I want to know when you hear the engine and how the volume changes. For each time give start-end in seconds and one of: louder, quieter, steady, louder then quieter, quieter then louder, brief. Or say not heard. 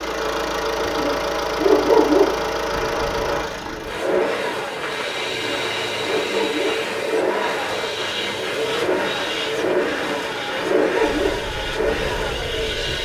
0.0-13.0 steady.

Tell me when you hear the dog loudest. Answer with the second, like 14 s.
2 s.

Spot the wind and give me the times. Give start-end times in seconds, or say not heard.
2.7-13.0.